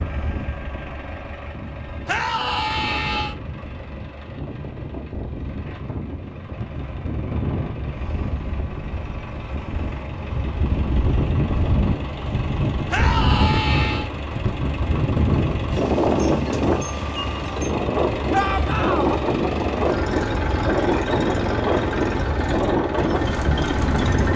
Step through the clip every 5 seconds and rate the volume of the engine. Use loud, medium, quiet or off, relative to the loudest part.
medium, medium, medium, loud, loud.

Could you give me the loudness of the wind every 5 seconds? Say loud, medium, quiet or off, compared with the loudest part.
quiet, medium, loud, loud, loud.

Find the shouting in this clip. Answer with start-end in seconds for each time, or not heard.
2.0-3.4, 12.9-14.1, 18.3-19.2.